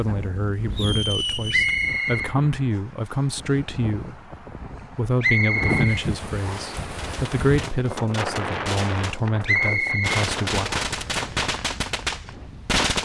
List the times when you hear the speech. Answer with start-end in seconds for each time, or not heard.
0.0-4.2, 5.0-10.7.